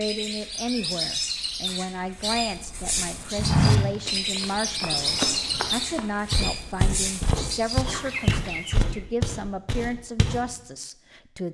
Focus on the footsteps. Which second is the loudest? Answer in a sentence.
The volume of the footsteps peaks at 4 seconds.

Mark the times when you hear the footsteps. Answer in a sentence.
You can hear the footsteps from 3.4 to 10.4 s.